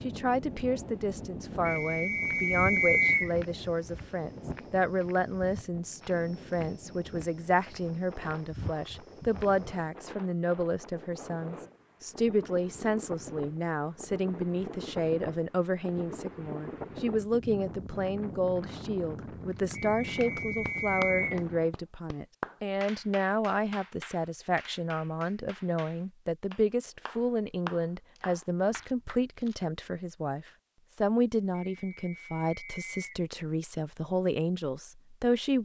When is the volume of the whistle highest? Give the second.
3 s.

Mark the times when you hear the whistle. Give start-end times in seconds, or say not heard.
1.6-3.3, 19.8-21.4, 31.7-33.2.